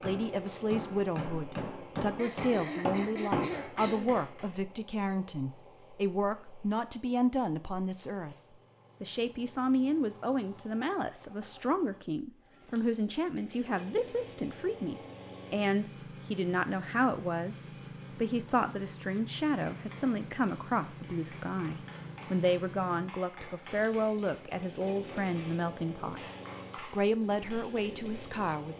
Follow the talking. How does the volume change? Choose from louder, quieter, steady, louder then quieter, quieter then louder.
steady.